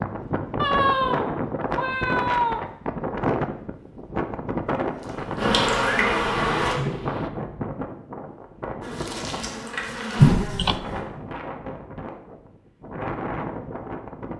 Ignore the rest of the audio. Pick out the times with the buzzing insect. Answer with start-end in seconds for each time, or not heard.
4.8-6.8, 8.8-11.1.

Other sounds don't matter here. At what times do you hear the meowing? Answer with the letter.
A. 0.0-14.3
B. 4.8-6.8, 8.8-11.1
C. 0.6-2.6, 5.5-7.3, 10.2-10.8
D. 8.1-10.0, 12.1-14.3
C.